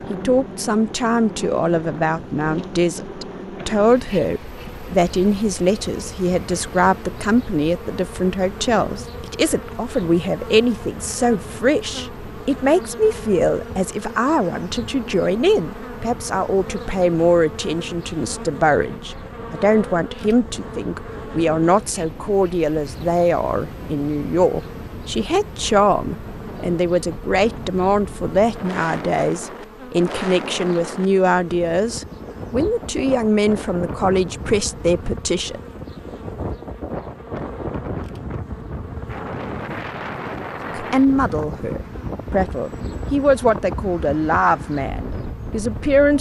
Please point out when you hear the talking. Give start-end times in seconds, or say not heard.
0.1-35.6, 40.7-46.1.